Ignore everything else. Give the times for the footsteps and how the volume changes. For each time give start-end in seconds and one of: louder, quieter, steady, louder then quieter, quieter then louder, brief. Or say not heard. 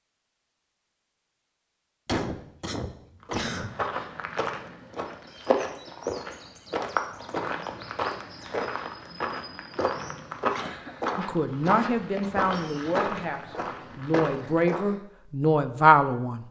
3.2-14.9 steady.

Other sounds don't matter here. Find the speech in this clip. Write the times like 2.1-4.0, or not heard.
11.2-16.4.